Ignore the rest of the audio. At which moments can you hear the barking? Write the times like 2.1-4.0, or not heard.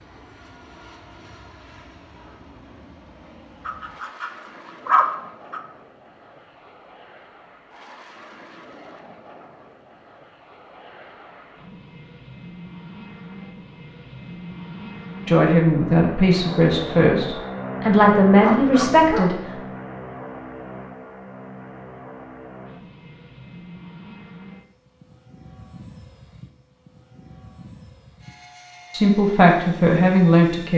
3.6-5.6, 18.4-19.4.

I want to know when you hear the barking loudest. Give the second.
5 s.